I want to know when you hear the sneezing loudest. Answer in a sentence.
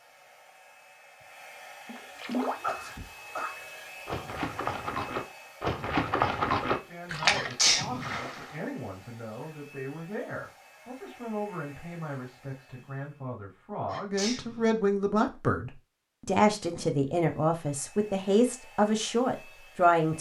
The volume of the sneezing peaks at 8 seconds.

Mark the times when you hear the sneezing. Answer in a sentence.
The sneezing can be heard from 2.5 to 3.5 s, from 7.3 to 8.1 s and from 13.8 to 14.7 s.